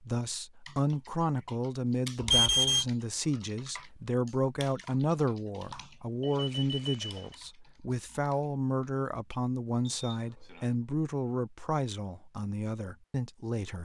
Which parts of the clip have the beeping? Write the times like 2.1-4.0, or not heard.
2.2-2.9, 5.6-7.4, 9.8-10.6.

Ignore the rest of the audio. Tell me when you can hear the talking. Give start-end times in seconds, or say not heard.
0.0-13.8.